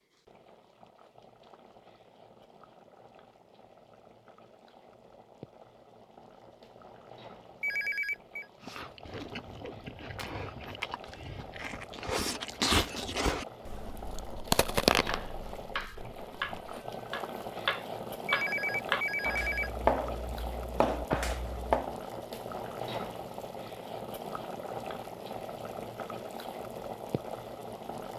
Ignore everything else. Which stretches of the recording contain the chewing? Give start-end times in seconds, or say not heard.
8.6-16.9.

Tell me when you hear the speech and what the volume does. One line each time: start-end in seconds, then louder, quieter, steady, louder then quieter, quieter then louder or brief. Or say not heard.
not heard.